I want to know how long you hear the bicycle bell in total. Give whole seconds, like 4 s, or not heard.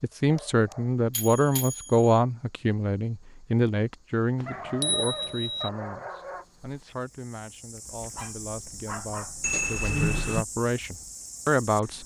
4 s.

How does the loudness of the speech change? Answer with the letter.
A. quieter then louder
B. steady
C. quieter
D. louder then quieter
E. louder
A.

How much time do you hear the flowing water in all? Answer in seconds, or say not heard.
not heard.